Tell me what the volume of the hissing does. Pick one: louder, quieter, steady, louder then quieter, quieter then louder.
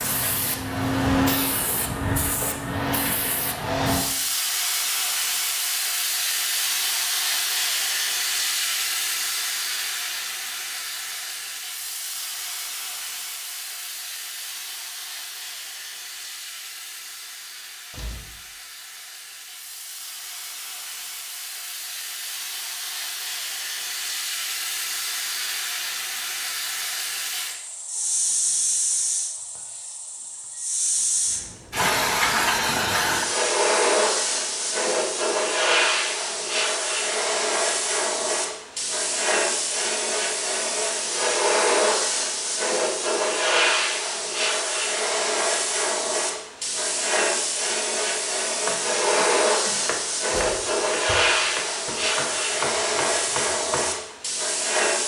quieter then louder.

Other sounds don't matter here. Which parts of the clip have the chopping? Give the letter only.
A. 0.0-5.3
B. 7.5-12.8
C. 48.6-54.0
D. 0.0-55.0
C.